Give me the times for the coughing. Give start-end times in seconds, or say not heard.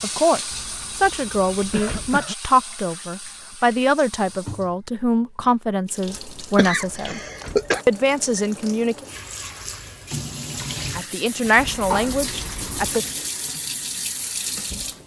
1.6-2.4, 6.5-7.8, 11.7-12.2.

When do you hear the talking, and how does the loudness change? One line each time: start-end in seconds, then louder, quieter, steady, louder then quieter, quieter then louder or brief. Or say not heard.
0.0-7.2 steady
7.8-9.1 brief
10.9-13.1 brief.